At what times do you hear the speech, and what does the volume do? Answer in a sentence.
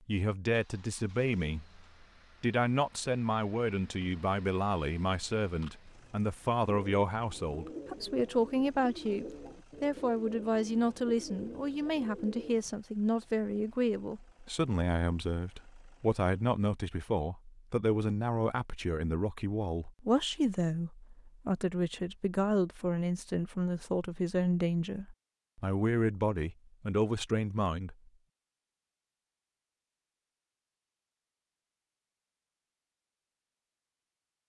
You can hear the speech from 0.1 to 27.9 s, at a steady volume.